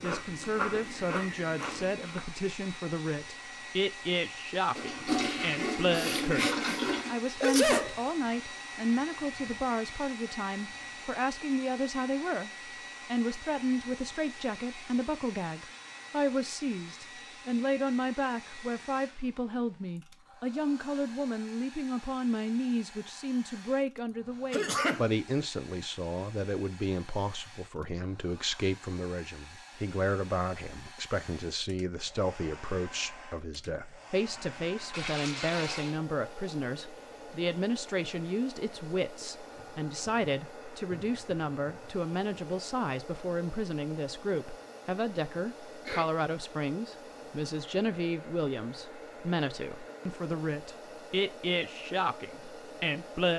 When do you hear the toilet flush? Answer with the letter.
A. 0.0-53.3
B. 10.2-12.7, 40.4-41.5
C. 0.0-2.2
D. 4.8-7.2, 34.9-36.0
D.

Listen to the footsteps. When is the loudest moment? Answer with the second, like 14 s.
1 s.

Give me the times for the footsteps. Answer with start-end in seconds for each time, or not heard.
0.0-2.2.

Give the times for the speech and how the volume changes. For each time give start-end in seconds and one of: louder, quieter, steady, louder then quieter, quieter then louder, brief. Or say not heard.
0.0-53.3 steady.